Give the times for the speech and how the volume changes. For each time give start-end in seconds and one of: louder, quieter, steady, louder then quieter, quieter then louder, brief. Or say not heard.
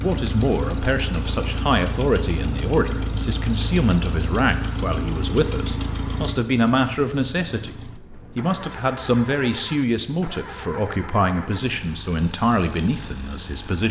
0.0-13.8 steady.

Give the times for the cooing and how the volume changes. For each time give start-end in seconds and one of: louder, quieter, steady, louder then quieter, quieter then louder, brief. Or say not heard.
not heard.